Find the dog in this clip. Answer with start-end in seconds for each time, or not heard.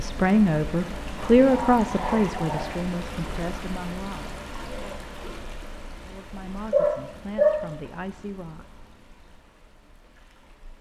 1.4-2.8, 6.7-7.7.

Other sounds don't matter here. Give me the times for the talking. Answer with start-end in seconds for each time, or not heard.
0.0-5.0, 6.0-8.7.